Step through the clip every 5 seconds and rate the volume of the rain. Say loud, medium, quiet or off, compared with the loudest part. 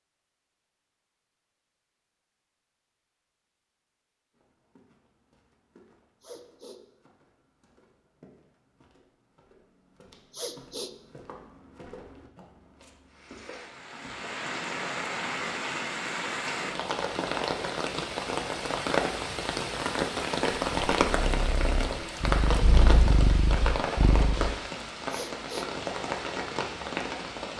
off, off, medium, loud, loud, loud.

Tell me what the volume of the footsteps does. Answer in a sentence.
The volume of the footsteps goes up.